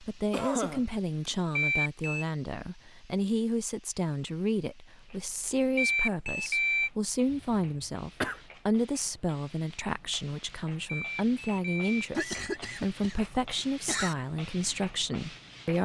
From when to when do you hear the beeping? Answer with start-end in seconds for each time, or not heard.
1.6-2.2, 5.8-6.9, 10.8-12.6.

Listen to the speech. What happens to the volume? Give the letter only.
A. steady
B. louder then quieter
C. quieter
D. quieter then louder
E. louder
A.